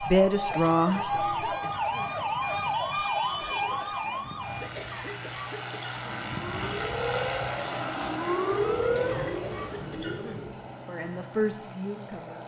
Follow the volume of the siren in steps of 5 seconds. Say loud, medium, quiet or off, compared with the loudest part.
loud, loud, off.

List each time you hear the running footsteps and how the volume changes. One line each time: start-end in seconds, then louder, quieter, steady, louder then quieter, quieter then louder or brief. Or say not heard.
not heard.